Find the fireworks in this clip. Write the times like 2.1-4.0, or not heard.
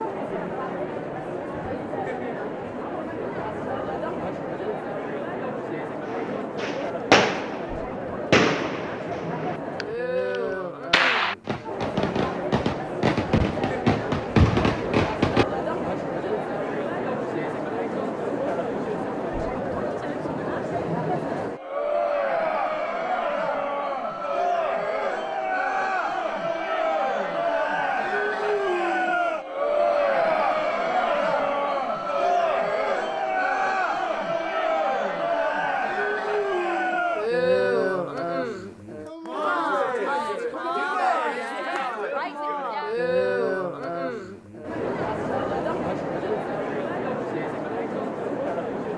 6.1-15.4.